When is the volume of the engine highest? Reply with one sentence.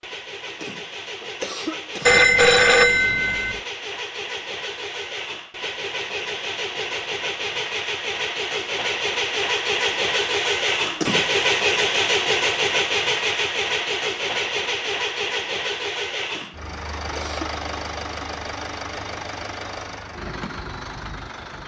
The loudest moment of the engine is at 12 seconds.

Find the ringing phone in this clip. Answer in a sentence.
You can hear the ringing phone from 2.0 to 3.6 s.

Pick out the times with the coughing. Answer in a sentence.
The coughing can be heard from 0.5 to 2.2 s, from 10.8 to 11.4 s and from 16.2 to 17.5 s.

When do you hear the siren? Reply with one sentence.
The siren can't be heard in this clip.